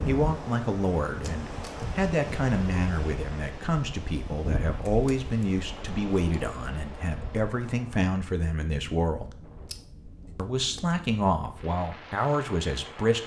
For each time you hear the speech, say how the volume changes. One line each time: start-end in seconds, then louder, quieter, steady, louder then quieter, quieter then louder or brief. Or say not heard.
0.1-9.3 steady
10.3-13.2 brief.